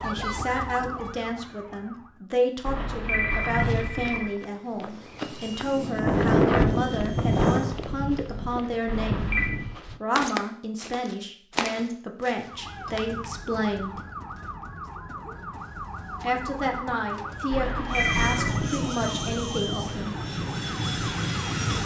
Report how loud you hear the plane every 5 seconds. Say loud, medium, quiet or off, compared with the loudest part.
off, loud, off, medium, medium.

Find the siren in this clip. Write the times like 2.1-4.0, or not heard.
0.0-2.2, 12.4-21.8.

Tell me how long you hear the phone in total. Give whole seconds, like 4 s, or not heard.
3 s.